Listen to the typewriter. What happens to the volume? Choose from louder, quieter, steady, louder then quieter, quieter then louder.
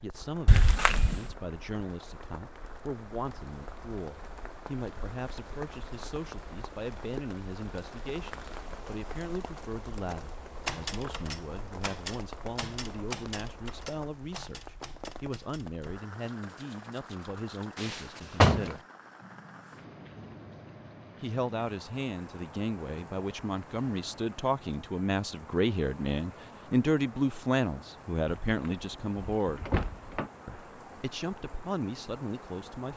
quieter.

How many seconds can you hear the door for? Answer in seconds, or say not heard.
4 s.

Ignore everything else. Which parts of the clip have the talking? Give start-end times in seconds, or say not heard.
0.0-18.9, 21.2-29.6, 30.4-32.9.